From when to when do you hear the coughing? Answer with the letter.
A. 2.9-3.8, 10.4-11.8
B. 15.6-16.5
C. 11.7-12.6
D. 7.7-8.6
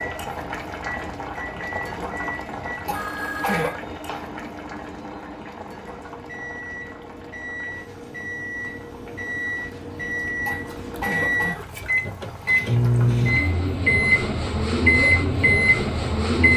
A.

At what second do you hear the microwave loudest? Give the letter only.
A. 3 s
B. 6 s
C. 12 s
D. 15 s
D.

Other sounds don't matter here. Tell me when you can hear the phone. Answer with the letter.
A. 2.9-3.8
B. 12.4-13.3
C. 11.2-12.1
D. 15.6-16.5
A.